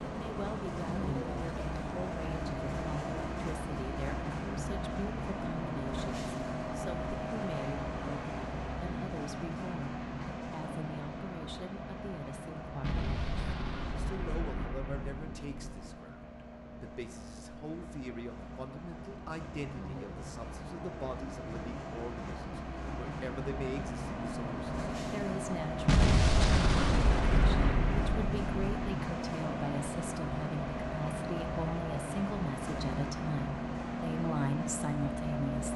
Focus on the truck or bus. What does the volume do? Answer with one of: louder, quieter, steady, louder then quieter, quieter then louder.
quieter then louder.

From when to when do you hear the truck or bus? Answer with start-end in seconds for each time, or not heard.
0.0-35.7.